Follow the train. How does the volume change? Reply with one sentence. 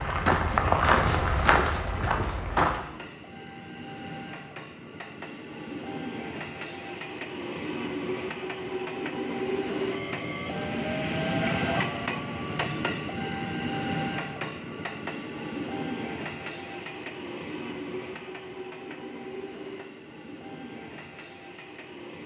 The volume of the train goes up, then down.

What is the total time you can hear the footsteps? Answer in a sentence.
The footsteps can be heard for 3 seconds in total.